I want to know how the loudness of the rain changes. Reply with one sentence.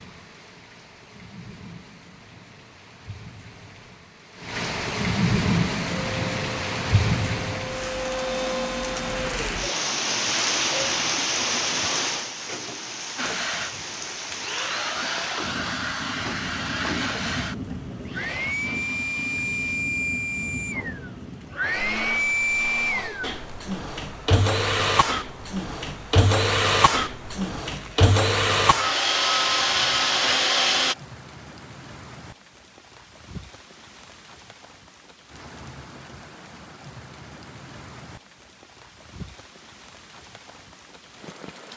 The volume of the rain goes down.